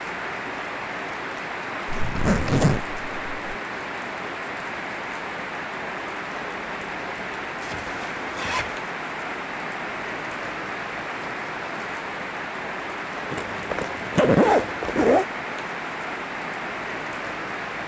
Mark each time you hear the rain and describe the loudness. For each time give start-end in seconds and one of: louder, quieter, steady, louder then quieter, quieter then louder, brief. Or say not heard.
0.0-17.8 steady.